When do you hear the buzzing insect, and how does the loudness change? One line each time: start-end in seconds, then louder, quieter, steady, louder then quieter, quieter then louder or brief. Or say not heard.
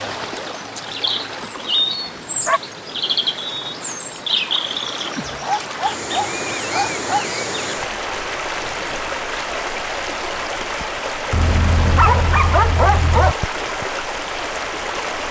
not heard.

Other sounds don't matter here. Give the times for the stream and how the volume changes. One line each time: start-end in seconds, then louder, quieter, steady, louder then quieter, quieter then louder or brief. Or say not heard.
0.0-15.2 louder.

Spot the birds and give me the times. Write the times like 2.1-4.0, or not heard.
0.1-7.8.